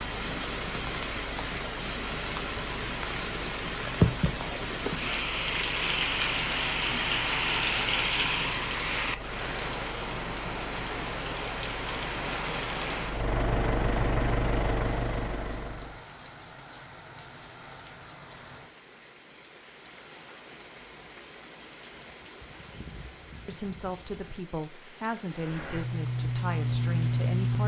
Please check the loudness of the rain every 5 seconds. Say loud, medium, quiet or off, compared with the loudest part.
loud, loud, medium, quiet, quiet, quiet.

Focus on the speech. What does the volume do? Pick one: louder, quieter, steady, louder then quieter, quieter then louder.
steady.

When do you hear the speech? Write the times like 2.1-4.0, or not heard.
23.4-27.6.